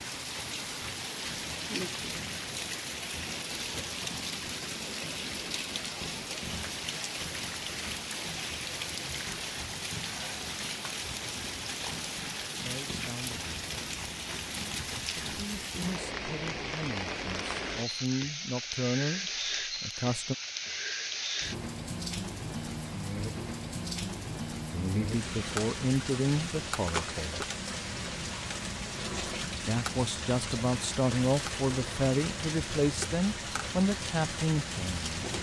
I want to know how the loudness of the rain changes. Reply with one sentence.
The loudness of the rain stays about the same.